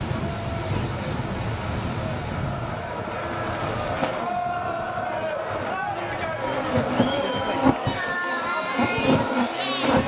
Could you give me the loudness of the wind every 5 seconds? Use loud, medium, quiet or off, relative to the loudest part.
loud, medium.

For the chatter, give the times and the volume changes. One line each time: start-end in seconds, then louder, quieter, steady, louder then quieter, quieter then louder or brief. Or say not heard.
0.1-10.0 louder.